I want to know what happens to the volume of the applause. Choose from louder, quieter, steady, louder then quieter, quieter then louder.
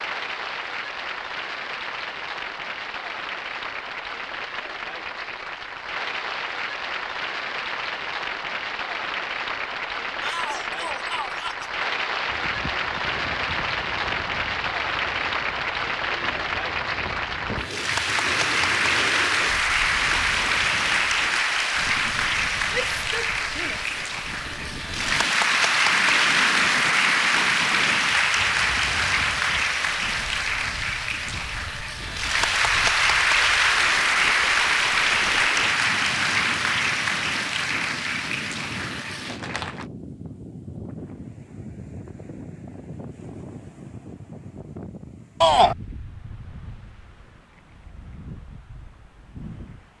louder.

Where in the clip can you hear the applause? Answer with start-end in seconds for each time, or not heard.
0.0-39.9.